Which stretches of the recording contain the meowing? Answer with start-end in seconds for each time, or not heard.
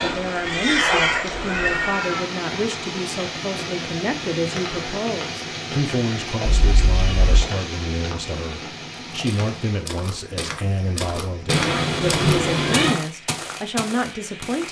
0.3-2.2, 6.5-7.5, 11.4-13.0.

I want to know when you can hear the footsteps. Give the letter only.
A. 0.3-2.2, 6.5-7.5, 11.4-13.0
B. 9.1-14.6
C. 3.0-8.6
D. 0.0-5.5
B.